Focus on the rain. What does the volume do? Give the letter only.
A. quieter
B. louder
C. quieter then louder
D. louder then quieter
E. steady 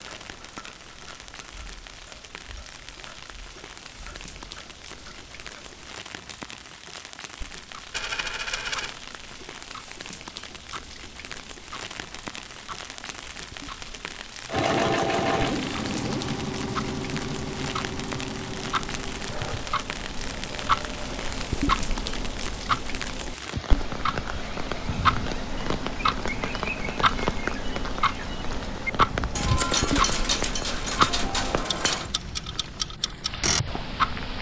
B.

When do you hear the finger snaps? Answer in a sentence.
The finger snaps can't be heard in this clip.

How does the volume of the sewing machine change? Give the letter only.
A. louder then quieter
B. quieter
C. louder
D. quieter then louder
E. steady
B.